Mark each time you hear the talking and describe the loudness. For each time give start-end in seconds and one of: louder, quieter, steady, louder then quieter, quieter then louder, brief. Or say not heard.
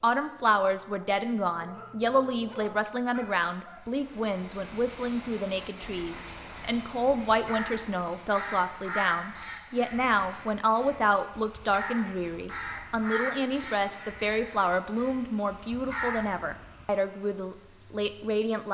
0.0-18.6 steady.